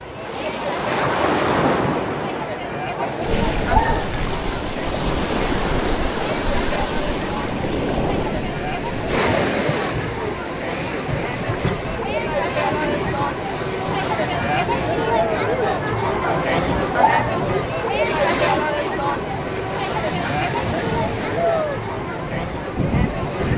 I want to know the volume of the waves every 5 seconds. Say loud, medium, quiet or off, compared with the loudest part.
loud, loud, medium, medium, loud.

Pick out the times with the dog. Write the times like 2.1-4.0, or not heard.
2.9-4.1, 16.2-17.4.